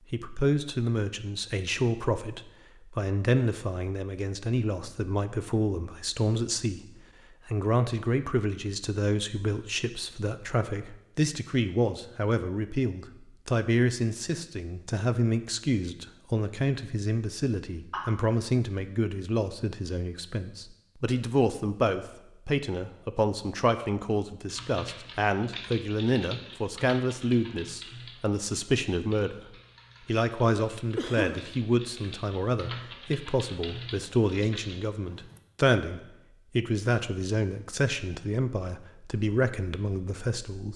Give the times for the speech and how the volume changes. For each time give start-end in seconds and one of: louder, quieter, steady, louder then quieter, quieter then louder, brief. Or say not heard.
0.1-6.8 steady
7.5-29.4 steady
30.1-40.7 steady.